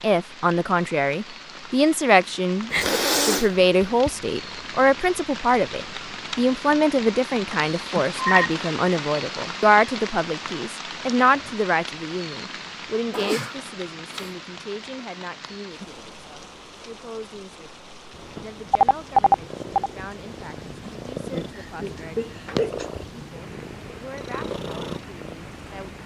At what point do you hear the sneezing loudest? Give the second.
3 s.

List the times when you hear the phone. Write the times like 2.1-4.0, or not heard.
7.5-8.5, 18.7-19.9.